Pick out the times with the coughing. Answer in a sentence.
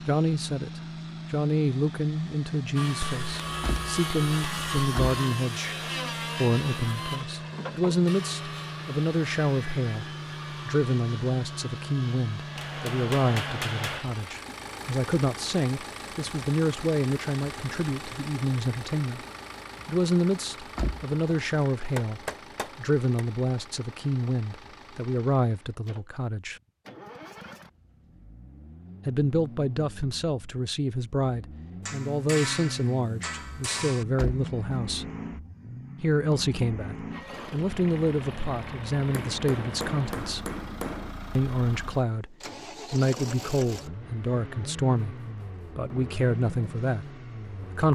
The coughing can't be heard in this clip.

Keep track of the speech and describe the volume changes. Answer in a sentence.
The loudness of the speech stays about the same.